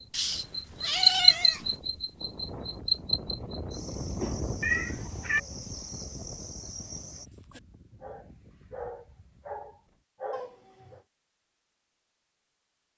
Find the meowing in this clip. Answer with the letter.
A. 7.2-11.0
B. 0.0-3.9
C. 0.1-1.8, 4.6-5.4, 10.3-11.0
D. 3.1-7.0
C.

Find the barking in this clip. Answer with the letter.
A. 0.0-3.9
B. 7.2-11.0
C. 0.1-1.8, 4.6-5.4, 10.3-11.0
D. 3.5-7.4
B.